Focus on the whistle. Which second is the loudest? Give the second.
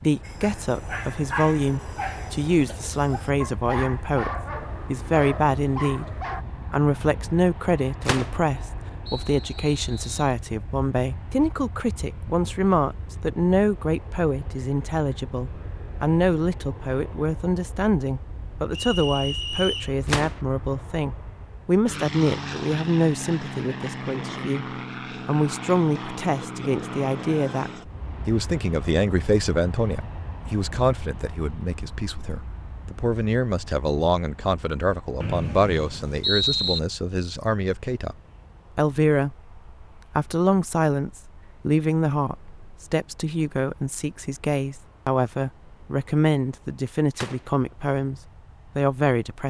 36 s.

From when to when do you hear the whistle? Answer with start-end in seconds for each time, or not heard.
9.1-10.3, 18.7-19.9, 35.2-36.8.